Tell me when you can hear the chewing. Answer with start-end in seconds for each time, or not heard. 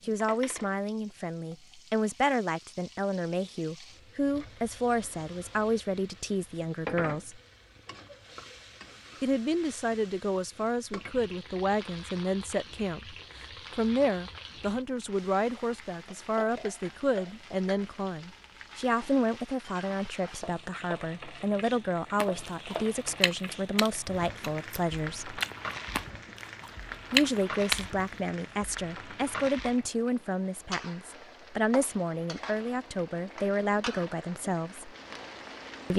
22.1-27.9.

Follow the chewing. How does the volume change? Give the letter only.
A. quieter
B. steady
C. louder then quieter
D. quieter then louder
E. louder
D.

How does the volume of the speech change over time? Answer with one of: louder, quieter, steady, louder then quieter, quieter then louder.
steady.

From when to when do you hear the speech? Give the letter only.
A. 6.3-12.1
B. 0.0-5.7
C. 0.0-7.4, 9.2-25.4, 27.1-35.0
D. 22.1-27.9
C.